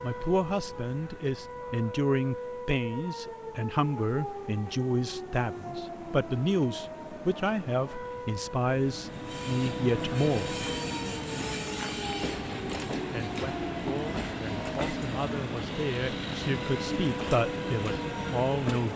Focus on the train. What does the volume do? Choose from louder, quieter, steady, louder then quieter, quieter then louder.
steady.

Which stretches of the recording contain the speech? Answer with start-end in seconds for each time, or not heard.
0.0-10.7, 13.1-18.9.